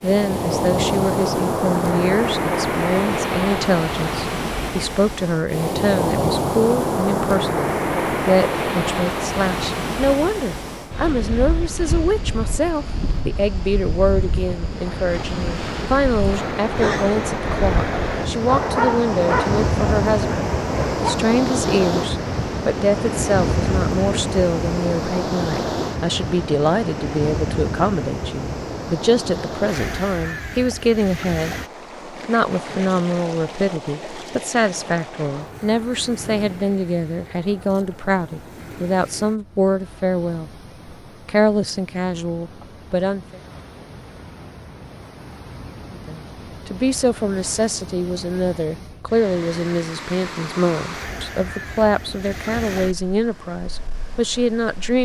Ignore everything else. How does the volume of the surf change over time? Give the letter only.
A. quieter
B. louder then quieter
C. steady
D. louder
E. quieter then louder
A.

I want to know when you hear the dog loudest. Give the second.
19 s.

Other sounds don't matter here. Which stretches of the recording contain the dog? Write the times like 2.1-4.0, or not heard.
18.4-21.2.